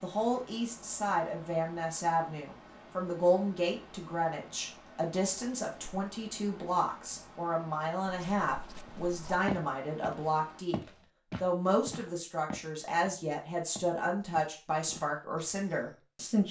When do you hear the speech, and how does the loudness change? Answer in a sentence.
You can hear the speech from 0.0 to 16.4 s, at a steady volume.